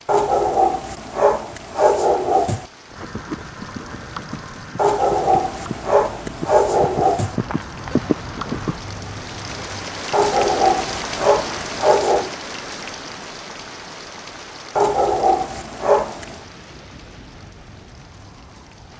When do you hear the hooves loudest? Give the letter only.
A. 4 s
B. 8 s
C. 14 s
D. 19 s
B.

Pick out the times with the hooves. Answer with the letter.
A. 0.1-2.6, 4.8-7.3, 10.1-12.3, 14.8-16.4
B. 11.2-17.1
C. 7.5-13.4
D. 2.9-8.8
D.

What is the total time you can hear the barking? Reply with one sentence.
You can hear the barking for 9 seconds altogether.